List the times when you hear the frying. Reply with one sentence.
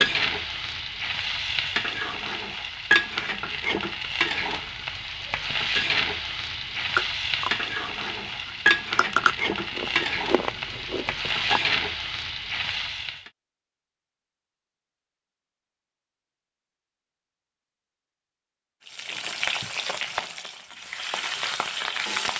The frying can be heard from 0.0 to 13.3 s and from 18.9 to 22.3 s.